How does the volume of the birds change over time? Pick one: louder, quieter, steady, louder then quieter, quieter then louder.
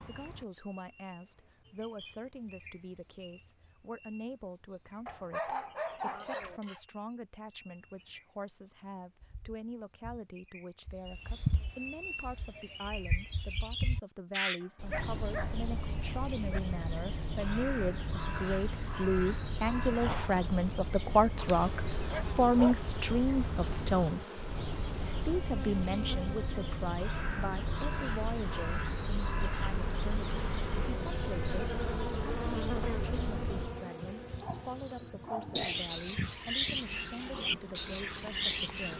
louder.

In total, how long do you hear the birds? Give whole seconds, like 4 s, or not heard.
39 s.